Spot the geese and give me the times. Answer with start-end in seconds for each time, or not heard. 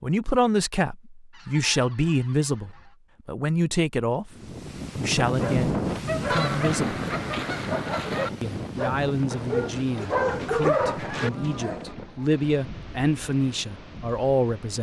1.3-3.0, 6.3-8.3, 11.1-12.4.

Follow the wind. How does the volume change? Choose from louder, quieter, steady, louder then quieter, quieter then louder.
quieter.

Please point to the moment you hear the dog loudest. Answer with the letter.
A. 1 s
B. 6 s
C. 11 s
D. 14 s
C.